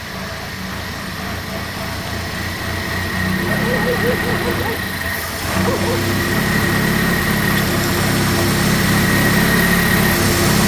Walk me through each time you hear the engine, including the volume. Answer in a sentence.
The engine can be heard from 0.0 to 10.6 s, getting louder.